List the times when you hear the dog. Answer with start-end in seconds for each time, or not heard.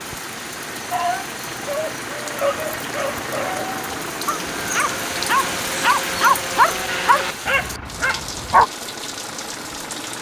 0.9-8.7.